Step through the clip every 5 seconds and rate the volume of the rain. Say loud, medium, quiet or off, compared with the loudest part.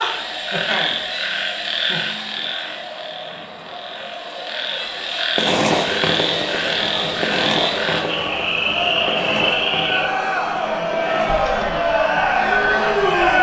off, loud, medium.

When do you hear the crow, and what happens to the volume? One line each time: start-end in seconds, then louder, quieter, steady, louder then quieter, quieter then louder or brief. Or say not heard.
not heard.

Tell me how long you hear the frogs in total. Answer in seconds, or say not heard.
10 s.